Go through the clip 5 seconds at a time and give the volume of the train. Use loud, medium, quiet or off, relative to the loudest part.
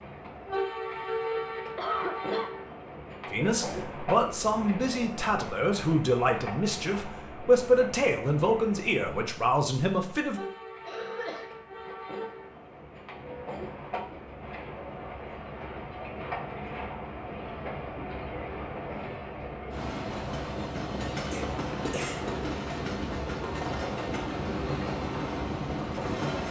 loud, medium, medium, medium, loud, loud.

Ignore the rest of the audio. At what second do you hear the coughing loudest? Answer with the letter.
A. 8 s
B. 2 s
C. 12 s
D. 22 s
B.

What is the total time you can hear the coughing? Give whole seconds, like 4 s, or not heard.
2 s.